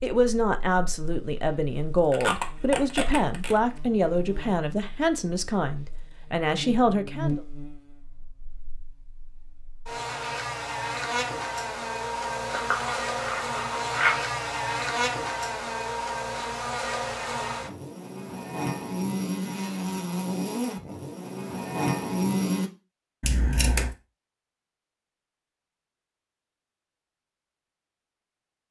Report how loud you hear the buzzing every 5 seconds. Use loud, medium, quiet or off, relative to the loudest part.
quiet, medium, loud, loud, loud, off.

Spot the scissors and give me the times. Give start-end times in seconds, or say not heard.
2.1-3.6, 12.5-14.2, 23.2-23.9.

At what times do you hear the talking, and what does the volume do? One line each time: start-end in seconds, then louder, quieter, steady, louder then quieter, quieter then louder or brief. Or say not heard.
0.0-7.4 steady.